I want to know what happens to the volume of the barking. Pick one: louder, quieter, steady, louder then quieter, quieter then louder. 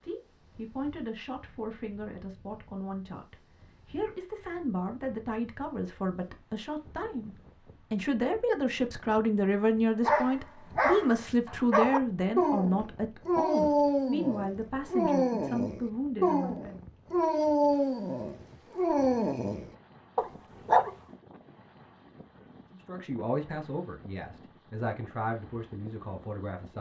steady.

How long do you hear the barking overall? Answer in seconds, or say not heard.
11 s.